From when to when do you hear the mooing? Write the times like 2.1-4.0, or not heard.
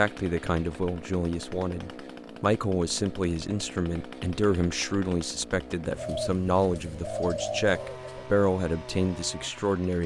not heard.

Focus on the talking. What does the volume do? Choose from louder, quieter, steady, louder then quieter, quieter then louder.
steady.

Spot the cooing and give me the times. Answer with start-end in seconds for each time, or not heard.
6.0-8.3.